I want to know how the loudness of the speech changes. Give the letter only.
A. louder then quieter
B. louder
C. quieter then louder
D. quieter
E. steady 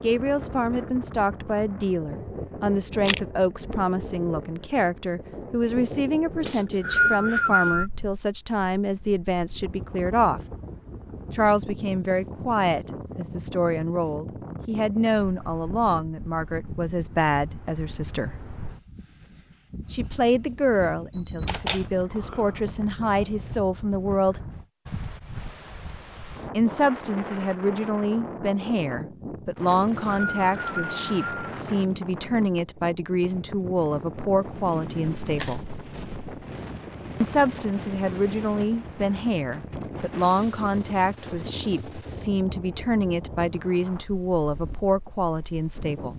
E.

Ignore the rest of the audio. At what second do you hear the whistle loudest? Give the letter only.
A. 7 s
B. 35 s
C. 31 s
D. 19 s
A.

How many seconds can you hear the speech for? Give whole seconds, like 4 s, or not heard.
40 s.